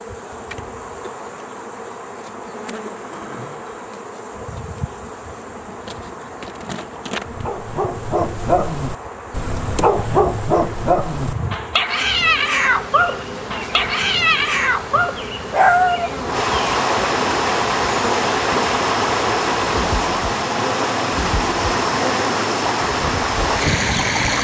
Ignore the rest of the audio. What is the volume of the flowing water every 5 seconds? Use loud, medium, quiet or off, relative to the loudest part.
quiet, quiet, quiet, loud, loud.